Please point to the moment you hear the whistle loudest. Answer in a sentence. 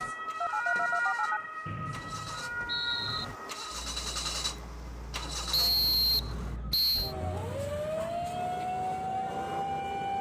The volume of the whistle peaks at 6 seconds.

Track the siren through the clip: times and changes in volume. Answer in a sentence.
You can hear the siren from 0.0 to 10.1 s, getting quieter then louder.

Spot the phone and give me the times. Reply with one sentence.
The phone can be heard from 0.4 to 1.4 s.